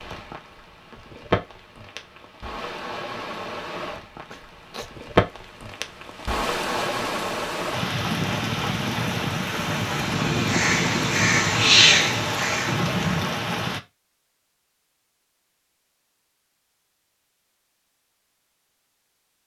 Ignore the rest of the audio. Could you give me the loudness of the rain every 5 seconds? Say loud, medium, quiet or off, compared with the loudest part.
medium, loud, loud, off.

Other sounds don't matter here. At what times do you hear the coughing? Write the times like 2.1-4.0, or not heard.
4.3-5.0.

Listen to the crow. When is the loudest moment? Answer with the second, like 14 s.
12 s.